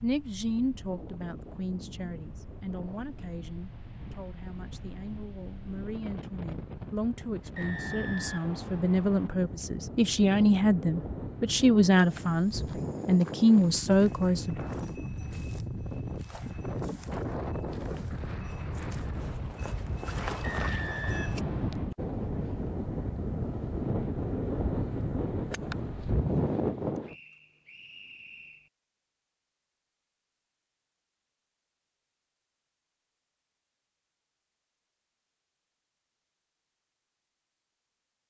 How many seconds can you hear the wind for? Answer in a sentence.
The wind can be heard for 27 seconds in total.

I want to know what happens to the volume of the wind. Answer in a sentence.
The loudness of the wind goes up.